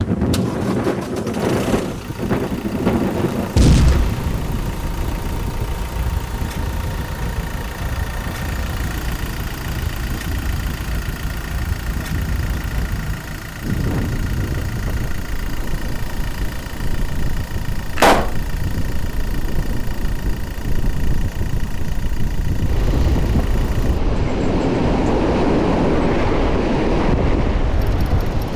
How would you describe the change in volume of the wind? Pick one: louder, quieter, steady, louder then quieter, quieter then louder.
quieter then louder.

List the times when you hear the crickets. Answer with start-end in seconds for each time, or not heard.
not heard.